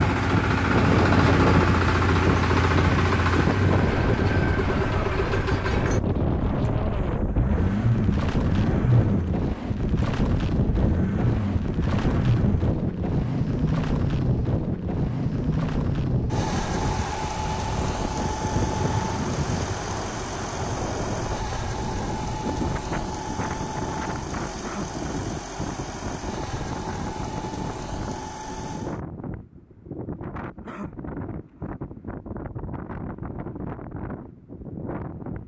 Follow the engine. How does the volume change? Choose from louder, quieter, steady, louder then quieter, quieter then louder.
quieter.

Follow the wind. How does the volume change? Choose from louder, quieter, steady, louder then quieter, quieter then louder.
quieter.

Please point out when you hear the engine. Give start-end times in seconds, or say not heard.
0.0-29.0.